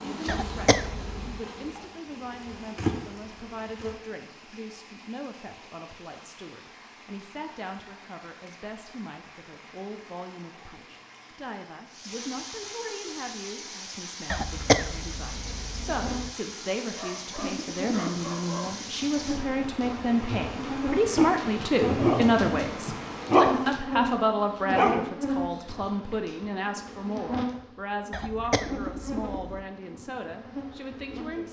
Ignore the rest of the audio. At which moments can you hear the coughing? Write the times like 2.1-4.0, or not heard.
0.2-1.4, 14.3-16.3, 28.1-29.6.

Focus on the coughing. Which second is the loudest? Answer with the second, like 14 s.
15 s.